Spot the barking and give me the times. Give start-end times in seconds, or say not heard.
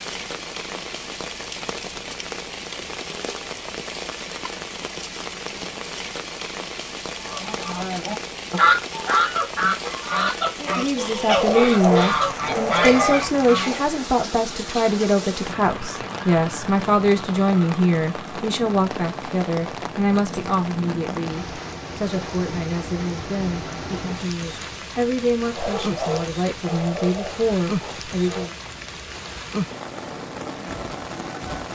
11.3-13.9, 25.5-28.5.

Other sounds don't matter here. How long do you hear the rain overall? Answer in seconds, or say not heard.
32 s.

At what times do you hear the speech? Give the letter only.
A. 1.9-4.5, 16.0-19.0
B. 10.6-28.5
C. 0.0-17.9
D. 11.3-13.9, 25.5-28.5
B.